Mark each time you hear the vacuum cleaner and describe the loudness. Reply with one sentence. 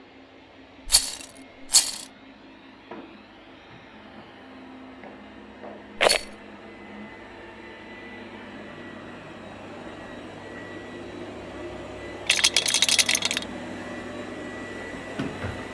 The vacuum cleaner can be heard from 0.0 to 15.6 s, getting louder.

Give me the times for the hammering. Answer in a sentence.
You can't hear the hammering here.